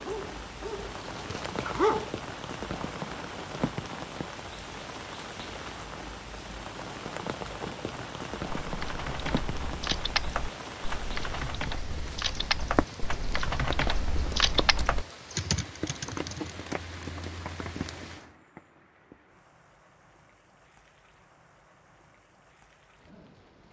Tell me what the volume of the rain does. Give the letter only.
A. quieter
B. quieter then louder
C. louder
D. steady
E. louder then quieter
A.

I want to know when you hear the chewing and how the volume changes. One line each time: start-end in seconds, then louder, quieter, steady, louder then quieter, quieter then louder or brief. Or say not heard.
not heard.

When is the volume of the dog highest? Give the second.
2 s.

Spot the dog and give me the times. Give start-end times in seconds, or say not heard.
0.0-2.1.